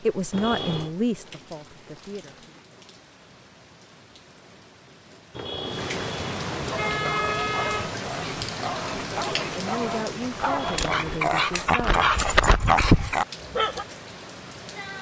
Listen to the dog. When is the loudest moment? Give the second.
13 s.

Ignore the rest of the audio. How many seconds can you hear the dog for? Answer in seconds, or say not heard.
7 s.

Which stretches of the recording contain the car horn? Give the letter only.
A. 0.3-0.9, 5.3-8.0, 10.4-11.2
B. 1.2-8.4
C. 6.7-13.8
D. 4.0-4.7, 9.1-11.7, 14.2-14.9
A.